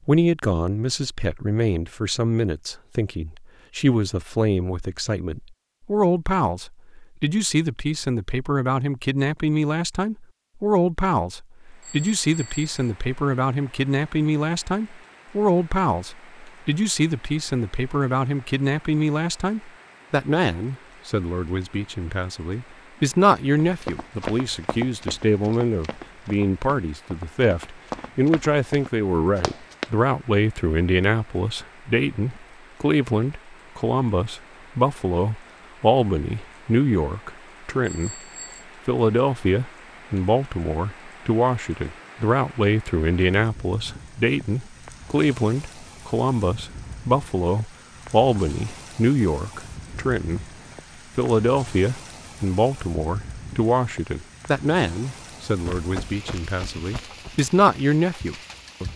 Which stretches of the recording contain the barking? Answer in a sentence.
You can't hear the barking here.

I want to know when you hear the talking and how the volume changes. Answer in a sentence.
You can hear the talking from 0.1 to 38.2 s, at a steady volume; from 38.9 to 50.5 s, at a steady volume; and from 51.1 to 58.9 s, getting quieter then louder.